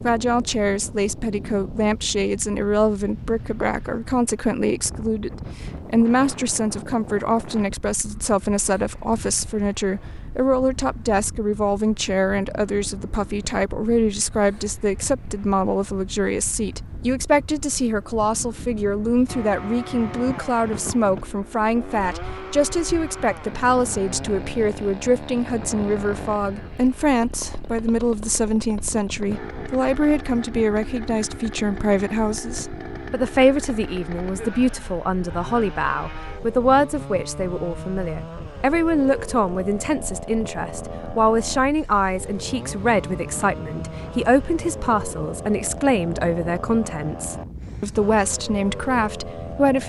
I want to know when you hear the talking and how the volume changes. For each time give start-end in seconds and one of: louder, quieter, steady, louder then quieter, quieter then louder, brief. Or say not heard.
0.0-49.8 steady.